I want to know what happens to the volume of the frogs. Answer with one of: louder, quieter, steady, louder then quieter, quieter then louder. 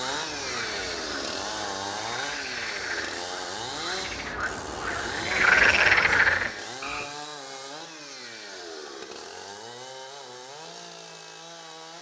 louder.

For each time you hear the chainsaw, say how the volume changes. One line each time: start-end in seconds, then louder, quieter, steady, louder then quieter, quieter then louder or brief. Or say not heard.
0.0-11.9 quieter.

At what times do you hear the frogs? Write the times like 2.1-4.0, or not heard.
0.0-7.0.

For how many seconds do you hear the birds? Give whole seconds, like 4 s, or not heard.
not heard.